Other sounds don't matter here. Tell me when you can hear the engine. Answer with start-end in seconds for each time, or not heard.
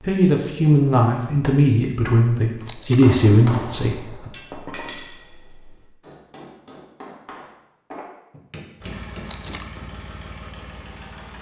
8.8-11.3.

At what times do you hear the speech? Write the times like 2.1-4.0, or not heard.
0.0-4.3.